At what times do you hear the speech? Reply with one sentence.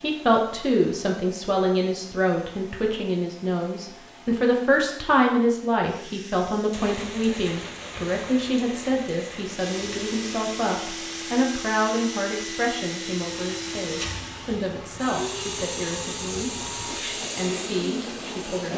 The speech can be heard from 0.0 to 18.7 s.